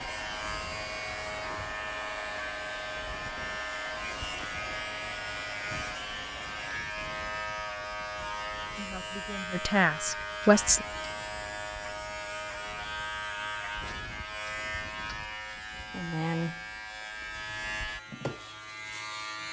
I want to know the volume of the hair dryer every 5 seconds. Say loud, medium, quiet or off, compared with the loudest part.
loud, loud, off, off.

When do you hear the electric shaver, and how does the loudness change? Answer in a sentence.
You can hear the electric shaver from 0.0 to 19.4 s, at a steady volume.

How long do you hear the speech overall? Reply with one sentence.
You can hear the speech for 2 seconds altogether.